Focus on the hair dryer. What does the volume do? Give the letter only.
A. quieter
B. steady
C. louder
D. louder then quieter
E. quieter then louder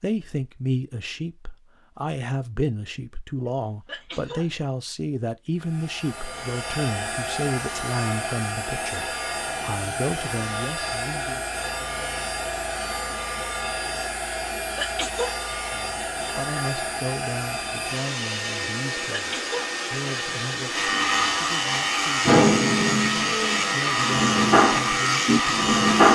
B.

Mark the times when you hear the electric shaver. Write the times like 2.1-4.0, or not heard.
20.7-26.1.